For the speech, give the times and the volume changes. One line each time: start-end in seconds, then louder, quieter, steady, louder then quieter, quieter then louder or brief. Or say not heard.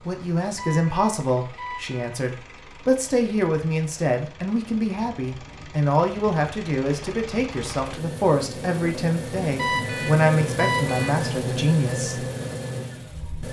0.1-12.2 steady.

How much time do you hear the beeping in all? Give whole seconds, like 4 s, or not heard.
3 s.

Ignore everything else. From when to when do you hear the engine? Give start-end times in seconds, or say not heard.
0.0-13.4.